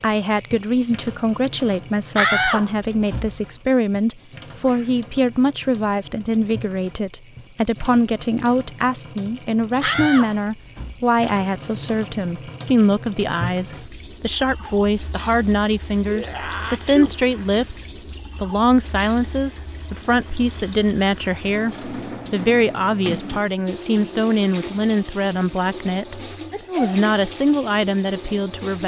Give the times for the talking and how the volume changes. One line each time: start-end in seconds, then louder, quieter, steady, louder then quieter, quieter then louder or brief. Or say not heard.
0.0-28.8 steady.